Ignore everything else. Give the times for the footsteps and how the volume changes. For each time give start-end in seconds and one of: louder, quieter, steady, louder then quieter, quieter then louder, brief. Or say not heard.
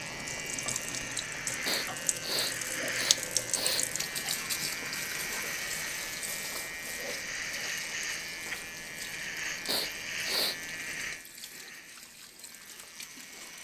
not heard.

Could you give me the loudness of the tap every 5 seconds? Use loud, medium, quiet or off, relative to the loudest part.
loud, medium, quiet.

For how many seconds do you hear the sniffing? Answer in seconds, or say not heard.
3 s.